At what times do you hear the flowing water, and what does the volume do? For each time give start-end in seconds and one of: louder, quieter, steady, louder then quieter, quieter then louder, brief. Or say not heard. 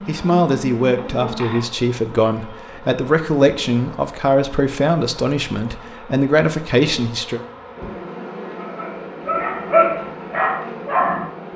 not heard.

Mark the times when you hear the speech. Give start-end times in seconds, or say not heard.
0.1-7.4.